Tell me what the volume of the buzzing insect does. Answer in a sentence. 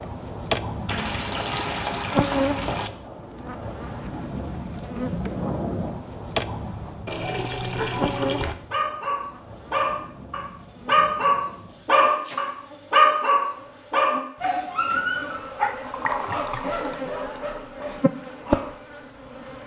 The loudness of the buzzing insect goes down, then up.